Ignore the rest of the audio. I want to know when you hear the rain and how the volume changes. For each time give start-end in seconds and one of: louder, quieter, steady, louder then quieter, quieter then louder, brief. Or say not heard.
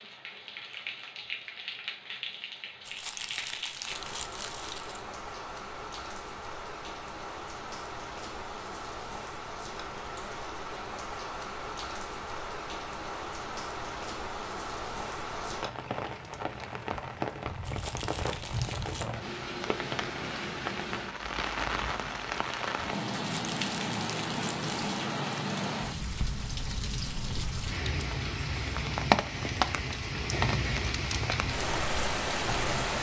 0.0-32.9 louder.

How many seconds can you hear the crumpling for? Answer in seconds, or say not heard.
5 s.